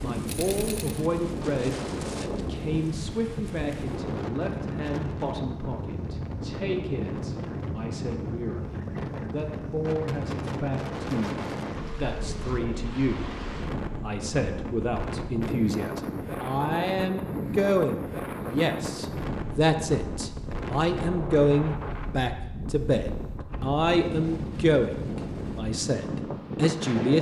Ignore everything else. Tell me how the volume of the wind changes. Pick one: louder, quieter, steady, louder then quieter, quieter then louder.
steady.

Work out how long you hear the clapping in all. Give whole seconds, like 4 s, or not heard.
not heard.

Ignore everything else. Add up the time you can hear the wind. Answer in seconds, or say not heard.
27 s.